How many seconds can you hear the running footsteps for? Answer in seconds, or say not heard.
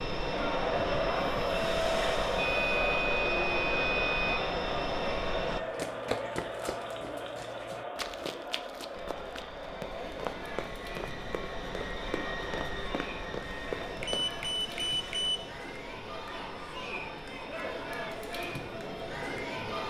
9 s.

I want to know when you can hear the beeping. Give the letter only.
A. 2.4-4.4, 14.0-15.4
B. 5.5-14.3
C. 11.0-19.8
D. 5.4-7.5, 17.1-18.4
A.